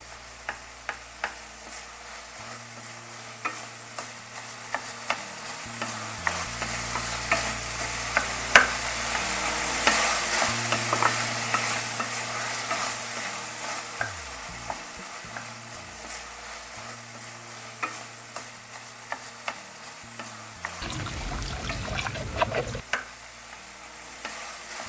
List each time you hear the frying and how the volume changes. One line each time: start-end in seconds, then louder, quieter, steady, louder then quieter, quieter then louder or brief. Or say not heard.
0.0-24.8 louder then quieter.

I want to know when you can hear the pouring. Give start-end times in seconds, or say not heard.
20.8-22.8.